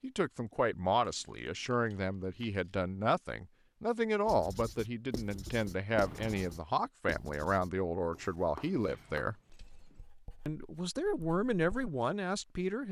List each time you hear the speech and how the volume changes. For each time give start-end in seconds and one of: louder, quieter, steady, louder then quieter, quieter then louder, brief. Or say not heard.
0.0-9.3 steady
10.4-12.8 brief.